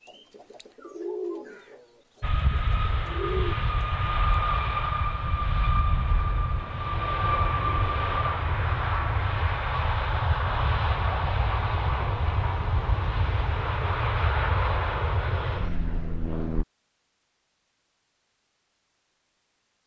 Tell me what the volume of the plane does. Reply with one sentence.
The volume of the plane stays about the same.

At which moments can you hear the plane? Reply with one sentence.
The plane can be heard from 2.2 to 16.6 s.